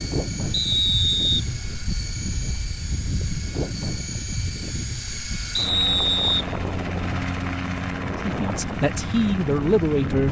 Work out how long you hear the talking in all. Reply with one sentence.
The talking can be heard for 2 seconds in total.